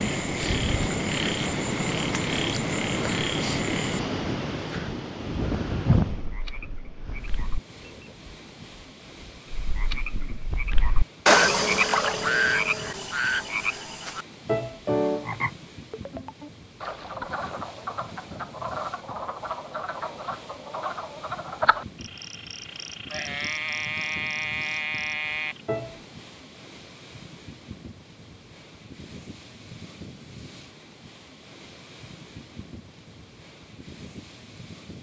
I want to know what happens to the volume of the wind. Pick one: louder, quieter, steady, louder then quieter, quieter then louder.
quieter.